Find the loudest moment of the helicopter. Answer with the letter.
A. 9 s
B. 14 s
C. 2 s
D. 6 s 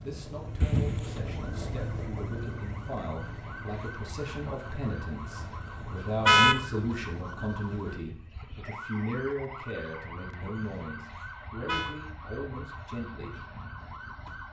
C.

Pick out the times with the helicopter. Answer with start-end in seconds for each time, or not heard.
0.0-8.0.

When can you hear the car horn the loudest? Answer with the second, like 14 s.
6 s.